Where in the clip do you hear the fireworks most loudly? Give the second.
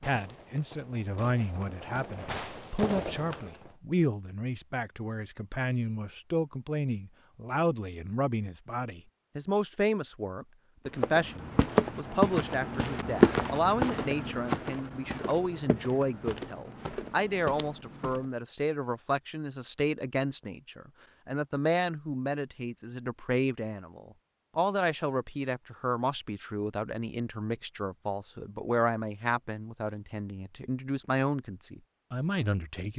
3 s.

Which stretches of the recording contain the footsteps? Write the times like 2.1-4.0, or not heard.
10.8-18.3.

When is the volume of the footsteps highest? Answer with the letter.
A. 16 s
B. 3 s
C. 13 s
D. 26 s
C.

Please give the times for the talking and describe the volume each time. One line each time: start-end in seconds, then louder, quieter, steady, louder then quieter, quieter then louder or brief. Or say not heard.
0.0-32.9 steady.